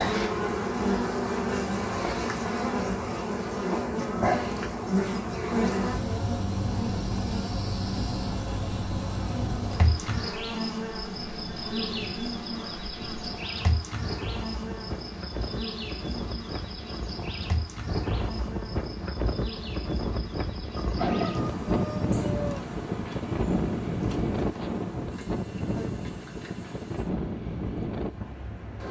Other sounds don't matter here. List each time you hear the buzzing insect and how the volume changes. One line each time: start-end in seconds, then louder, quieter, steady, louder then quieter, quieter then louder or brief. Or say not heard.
0.0-28.8 quieter.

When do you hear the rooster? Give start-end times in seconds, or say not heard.
20.8-22.6.